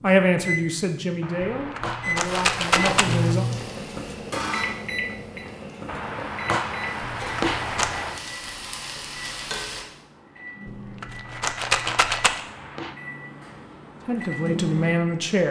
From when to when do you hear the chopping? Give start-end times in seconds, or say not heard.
1.2-3.4, 5.8-8.2, 11.2-12.9.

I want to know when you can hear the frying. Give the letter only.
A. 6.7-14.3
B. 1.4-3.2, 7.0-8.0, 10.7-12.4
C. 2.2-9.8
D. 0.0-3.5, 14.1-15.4
C.